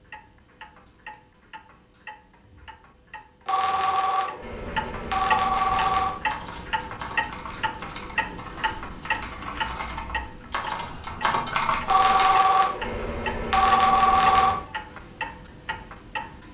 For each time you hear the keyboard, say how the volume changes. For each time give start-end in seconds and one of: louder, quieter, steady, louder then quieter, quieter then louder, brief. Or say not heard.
5.5-12.4 louder.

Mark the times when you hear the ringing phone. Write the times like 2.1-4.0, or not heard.
3.5-6.2, 11.8-14.6.